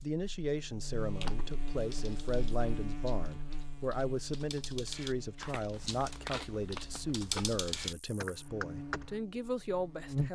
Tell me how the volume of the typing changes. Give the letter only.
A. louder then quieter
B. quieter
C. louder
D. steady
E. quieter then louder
C.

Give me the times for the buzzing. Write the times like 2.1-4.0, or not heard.
0.0-10.3.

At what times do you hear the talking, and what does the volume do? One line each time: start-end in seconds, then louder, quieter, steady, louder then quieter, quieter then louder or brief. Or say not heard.
0.0-10.3 steady.